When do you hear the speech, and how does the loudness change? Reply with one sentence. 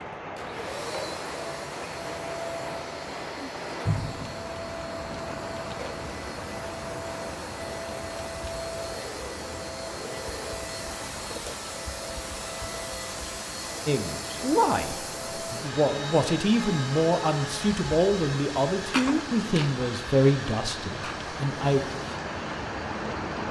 The speech can be heard from 13.8 to 21.8 s, at a steady volume.